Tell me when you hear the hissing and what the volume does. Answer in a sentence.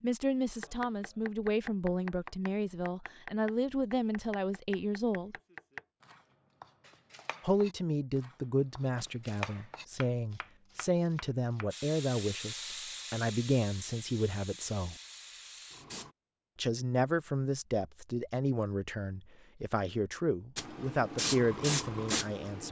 You can hear the hissing from 11.7 to 16.1 s, getting quieter; and briefly from 20.6 to 22.6 s.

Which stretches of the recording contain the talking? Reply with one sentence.
You can hear the talking from 0.0 to 5.3 s, from 7.4 to 14.9 s and from 16.6 to 22.6 s.